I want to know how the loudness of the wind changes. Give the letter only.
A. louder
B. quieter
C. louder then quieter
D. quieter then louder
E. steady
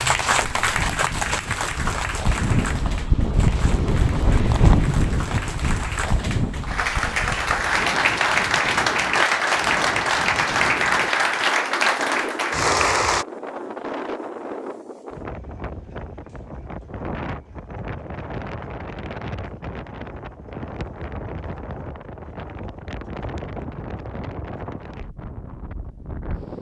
B.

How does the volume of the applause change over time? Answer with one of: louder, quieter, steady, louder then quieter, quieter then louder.
quieter then louder.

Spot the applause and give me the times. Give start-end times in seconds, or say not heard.
0.0-13.2.